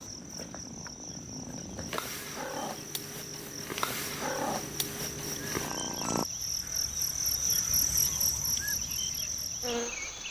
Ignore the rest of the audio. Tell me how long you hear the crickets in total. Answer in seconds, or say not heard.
10 s.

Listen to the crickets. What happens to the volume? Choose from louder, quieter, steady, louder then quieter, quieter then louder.
louder.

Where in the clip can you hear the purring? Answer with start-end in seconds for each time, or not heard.
0.0-6.2.